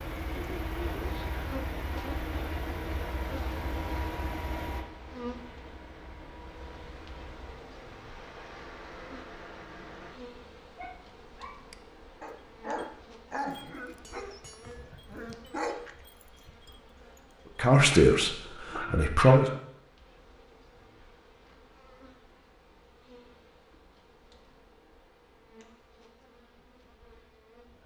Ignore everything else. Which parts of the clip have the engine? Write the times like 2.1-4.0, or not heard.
0.0-10.2.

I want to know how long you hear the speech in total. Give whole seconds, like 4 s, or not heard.
2 s.